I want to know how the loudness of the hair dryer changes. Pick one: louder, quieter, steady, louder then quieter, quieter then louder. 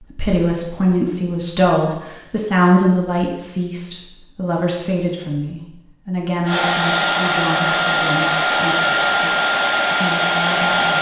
steady.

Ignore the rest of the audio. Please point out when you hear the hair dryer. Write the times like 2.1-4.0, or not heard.
6.5-10.9.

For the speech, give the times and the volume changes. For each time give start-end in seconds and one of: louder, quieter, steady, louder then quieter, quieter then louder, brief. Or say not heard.
0.0-10.9 quieter.